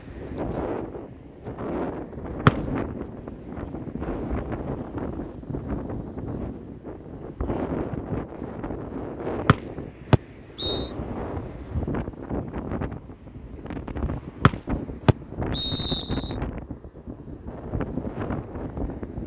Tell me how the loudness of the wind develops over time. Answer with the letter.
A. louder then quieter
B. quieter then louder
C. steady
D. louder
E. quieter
C.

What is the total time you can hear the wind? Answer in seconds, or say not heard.
19 s.